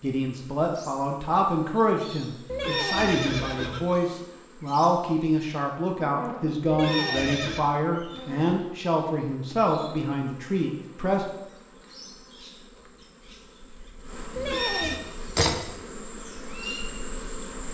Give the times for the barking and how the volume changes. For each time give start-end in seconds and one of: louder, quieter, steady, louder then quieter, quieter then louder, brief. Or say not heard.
not heard.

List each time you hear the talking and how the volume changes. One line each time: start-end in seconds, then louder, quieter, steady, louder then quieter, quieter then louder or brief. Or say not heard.
0.0-11.2 steady.